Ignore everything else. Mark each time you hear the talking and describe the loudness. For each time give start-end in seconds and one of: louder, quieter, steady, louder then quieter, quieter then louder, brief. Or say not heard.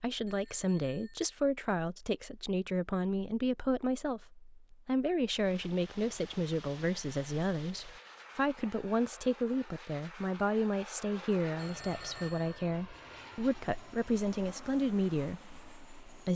0.0-16.3 steady.